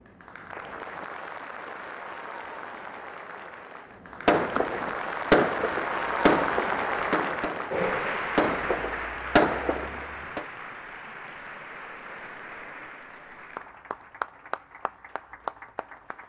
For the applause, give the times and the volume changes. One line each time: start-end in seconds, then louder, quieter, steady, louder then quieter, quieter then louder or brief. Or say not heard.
0.0-16.2 louder then quieter.